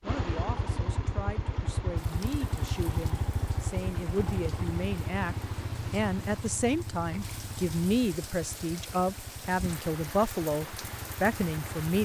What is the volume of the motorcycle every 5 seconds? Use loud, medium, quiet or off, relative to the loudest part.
loud, medium, medium.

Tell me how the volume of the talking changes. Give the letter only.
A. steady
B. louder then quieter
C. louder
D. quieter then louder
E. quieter
C.